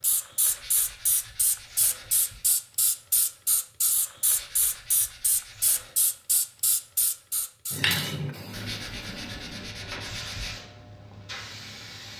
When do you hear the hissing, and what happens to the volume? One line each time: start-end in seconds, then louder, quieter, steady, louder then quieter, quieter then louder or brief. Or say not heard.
0.0-12.1 quieter.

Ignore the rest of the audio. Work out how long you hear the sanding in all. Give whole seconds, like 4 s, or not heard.
6 s.